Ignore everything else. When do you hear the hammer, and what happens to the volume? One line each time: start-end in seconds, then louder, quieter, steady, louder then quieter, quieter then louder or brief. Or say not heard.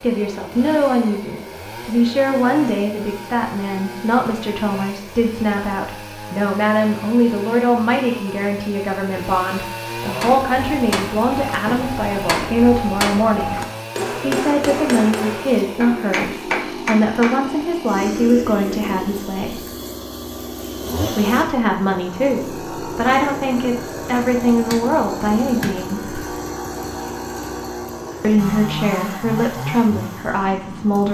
10.2-17.4 steady.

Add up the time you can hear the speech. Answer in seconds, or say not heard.
27 s.